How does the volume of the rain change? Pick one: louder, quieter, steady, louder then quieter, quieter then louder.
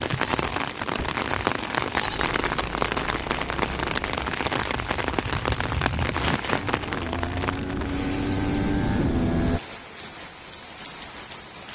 quieter.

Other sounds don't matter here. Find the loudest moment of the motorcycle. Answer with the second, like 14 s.
9 s.